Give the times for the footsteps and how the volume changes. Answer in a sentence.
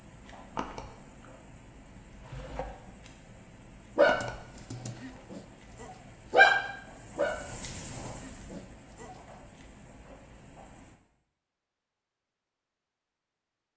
You can't hear the footsteps here.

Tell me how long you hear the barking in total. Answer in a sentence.
The barking can be heard for 5 seconds in total.